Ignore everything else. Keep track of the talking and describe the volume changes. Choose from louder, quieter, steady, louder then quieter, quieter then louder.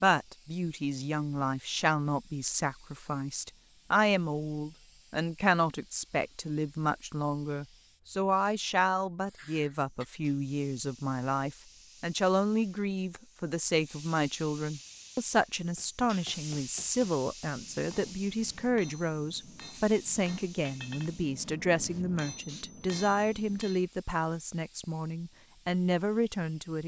steady.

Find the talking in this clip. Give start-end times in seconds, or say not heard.
0.0-26.8.